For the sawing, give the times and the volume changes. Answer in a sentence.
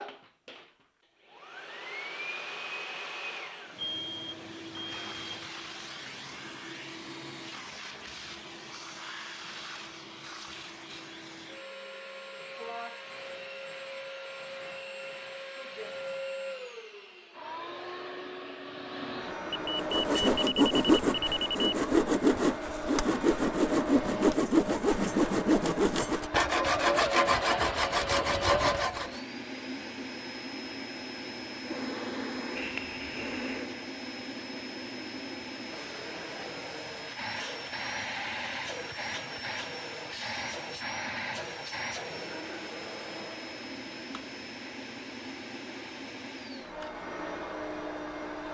The sawing can be heard from 19.6 to 29.2 s, at a steady volume.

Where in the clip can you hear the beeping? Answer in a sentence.
The beeping can be heard from 3.8 to 5.5 s, from 19.5 to 21.6 s and from 32.5 to 33.6 s.